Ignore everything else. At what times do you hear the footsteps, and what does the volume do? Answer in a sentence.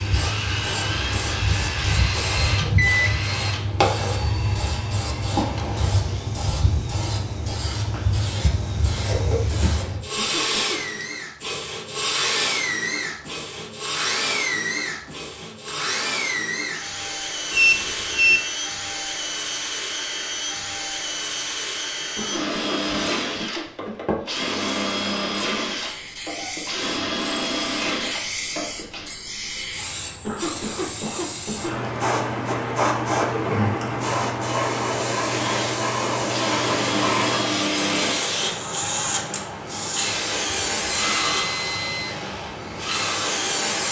The footsteps can't be heard in this clip.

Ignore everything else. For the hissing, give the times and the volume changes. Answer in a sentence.
You can hear the hissing from 0.0 to 43.8 s, getting quieter then louder.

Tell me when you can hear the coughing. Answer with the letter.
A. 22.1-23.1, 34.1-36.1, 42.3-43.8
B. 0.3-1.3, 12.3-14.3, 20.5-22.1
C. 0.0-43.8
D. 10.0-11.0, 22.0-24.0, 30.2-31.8
D.